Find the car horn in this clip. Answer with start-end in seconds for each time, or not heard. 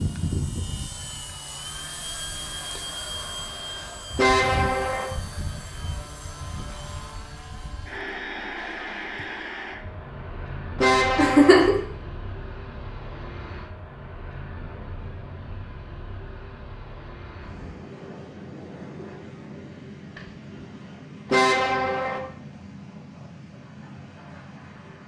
4.2-5.1, 10.8-11.7, 21.3-22.2.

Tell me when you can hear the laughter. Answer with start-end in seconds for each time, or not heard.
11.2-11.8.